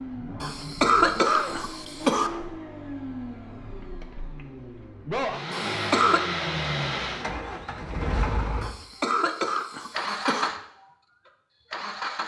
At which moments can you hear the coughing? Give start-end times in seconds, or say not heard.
0.4-2.3, 5.5-6.2, 8.6-10.5.